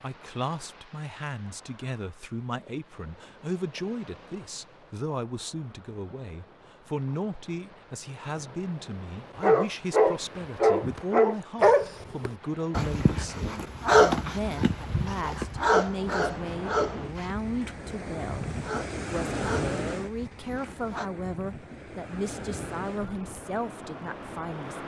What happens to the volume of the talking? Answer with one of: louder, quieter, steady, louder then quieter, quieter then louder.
steady.